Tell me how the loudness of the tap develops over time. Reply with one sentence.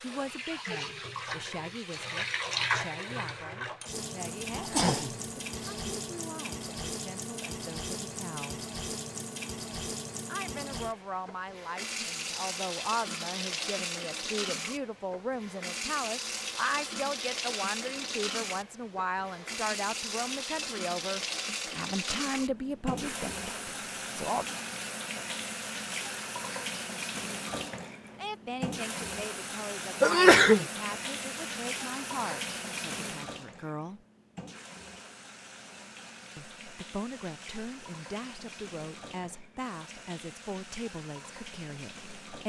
The loudness of the tap goes down.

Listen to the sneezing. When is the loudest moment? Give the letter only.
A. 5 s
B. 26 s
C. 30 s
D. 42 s
C.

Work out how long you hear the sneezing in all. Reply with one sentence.
The sneezing can be heard for 2 seconds in total.